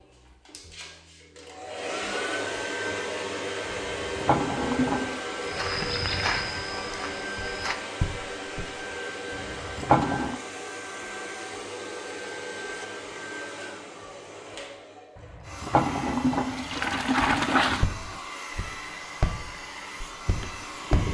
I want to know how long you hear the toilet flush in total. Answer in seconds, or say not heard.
5 s.